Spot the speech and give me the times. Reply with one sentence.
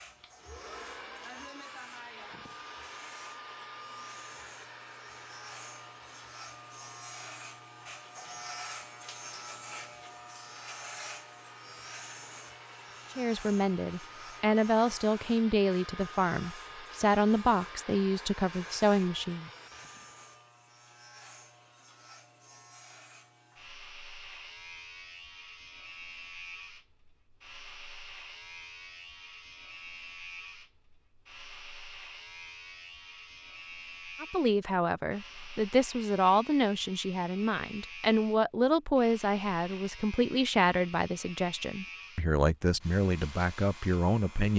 You can hear the speech from 13.2 to 19.5 s and from 34.2 to 44.5 s.